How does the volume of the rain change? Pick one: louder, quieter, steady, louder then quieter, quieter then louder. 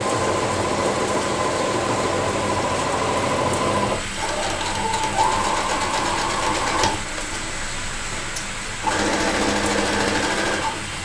steady.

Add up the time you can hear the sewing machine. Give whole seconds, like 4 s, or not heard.
11 s.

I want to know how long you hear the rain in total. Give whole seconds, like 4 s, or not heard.
11 s.